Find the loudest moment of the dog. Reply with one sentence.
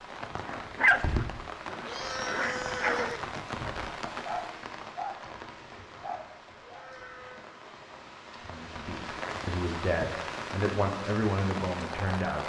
The loudest moment of the dog is at 1 second.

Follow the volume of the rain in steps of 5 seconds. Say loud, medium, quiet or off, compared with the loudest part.
loud, medium, loud.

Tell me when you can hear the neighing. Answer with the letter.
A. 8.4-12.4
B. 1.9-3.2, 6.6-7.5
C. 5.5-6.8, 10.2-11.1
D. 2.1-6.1
B.